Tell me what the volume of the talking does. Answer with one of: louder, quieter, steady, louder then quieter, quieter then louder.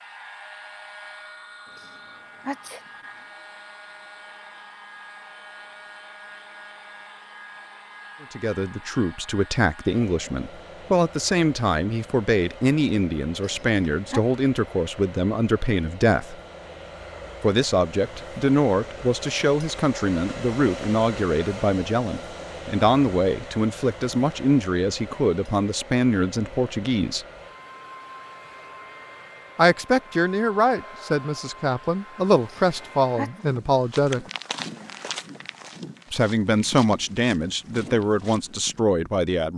steady.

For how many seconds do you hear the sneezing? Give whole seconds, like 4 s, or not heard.
3 s.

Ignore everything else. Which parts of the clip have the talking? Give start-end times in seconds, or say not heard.
8.2-16.4, 17.4-27.2, 29.6-34.2, 36.1-39.5.